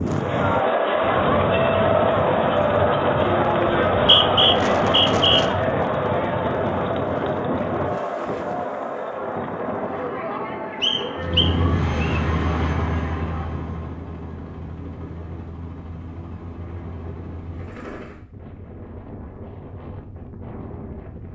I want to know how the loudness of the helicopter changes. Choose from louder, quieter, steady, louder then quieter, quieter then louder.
quieter.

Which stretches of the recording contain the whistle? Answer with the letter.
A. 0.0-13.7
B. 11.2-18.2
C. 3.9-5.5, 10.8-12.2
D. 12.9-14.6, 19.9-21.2
C.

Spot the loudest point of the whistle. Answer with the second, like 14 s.
4 s.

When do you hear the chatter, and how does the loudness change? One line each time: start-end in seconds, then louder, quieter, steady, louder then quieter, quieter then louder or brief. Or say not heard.
0.0-13.7 quieter.